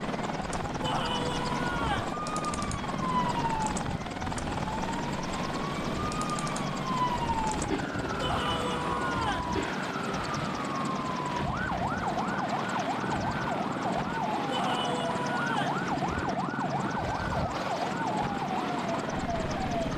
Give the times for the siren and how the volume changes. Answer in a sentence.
You can hear the siren from 0.0 to 19.9 s, at a steady volume.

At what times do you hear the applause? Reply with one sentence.
You can't hear the applause here.